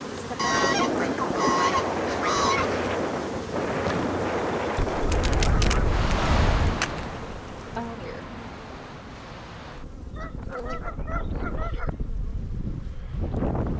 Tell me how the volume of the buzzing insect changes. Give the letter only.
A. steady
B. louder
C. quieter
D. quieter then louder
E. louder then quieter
C.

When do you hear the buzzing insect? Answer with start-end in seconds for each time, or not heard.
0.0-13.7.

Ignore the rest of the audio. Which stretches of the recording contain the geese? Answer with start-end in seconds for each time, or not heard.
0.3-2.8, 4.8-6.8, 10.2-11.9.